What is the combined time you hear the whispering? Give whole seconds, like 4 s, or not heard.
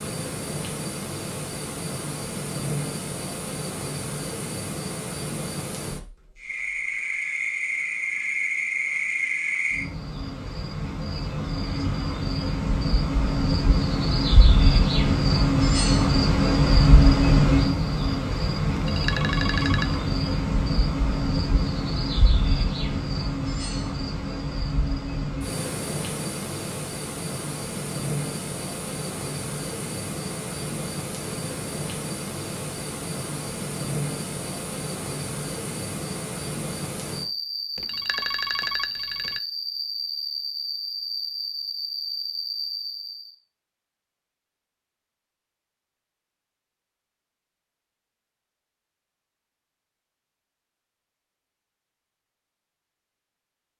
not heard.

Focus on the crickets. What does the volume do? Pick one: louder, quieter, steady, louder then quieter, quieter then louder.
louder then quieter.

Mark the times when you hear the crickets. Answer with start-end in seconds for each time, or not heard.
0.0-43.4.